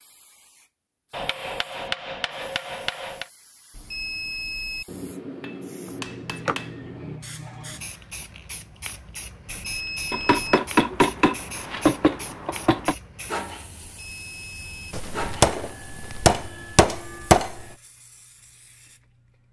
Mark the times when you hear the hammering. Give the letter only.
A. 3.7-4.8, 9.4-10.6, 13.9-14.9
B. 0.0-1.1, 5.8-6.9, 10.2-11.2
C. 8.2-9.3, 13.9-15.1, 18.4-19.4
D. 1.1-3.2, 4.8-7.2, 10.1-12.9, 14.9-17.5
D.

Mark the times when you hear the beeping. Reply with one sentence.
The beeping can be heard from 3.7 to 4.8 s, from 9.4 to 10.6 s and from 13.9 to 14.9 s.